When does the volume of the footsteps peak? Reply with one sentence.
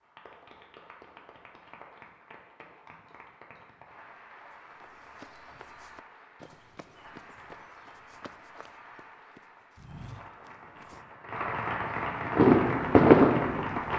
The volume of the footsteps peaks at 10 seconds.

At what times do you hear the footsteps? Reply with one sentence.
The footsteps can be heard from 4.5 to 10.9 s.